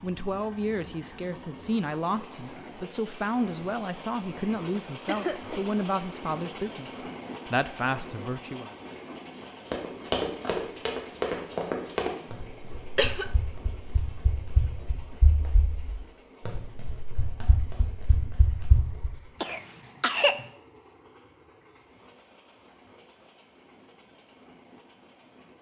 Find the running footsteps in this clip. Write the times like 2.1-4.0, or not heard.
9.7-19.1.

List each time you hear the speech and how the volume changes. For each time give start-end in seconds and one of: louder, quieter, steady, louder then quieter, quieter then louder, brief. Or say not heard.
0.0-8.7 steady.